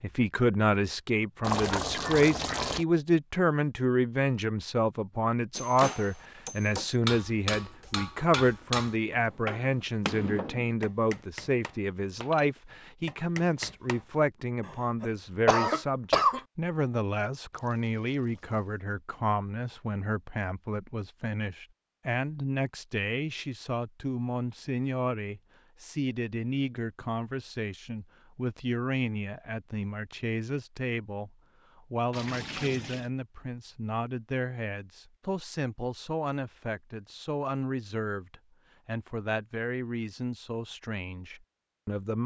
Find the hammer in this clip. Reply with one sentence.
You can hear the hammer from 5.5 to 14.1 s.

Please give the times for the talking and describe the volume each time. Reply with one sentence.
The talking can be heard from 0.0 to 42.2 s, getting quieter.